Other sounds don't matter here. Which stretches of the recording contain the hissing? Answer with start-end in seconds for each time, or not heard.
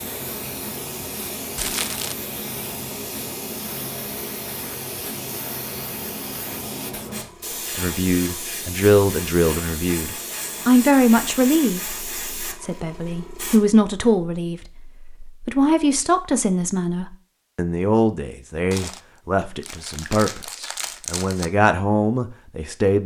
0.0-13.6.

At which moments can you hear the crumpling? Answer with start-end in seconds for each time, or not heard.
1.6-2.1, 18.7-21.5.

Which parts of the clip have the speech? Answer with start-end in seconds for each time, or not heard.
7.8-23.0.